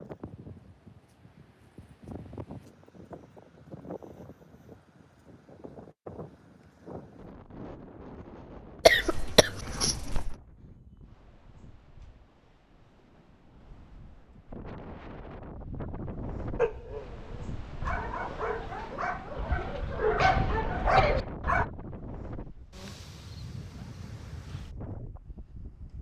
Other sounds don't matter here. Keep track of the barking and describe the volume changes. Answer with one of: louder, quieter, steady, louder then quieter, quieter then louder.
louder.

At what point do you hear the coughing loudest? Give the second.
9 s.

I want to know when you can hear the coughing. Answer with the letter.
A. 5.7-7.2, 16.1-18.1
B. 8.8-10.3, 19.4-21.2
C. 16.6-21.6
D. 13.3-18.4
B.